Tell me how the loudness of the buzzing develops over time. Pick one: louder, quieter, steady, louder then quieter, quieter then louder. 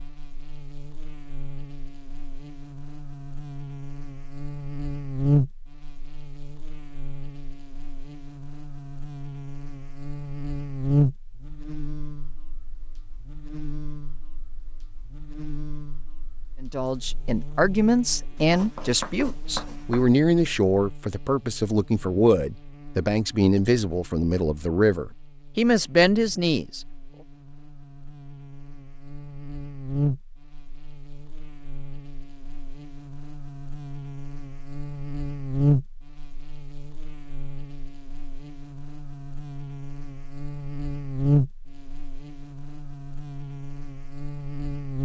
quieter then louder.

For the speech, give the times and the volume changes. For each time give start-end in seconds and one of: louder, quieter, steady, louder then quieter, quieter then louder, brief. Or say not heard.
16.6-26.9 steady.